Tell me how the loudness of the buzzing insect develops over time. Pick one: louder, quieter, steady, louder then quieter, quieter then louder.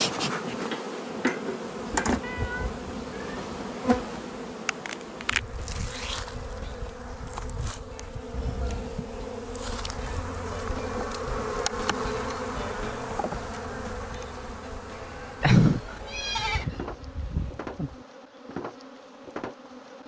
quieter.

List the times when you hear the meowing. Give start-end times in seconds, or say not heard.
2.2-3.4, 8.3-8.9, 15.4-16.6.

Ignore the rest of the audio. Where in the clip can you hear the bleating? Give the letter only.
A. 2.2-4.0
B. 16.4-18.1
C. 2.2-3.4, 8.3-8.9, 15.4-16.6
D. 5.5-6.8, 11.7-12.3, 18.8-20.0
B.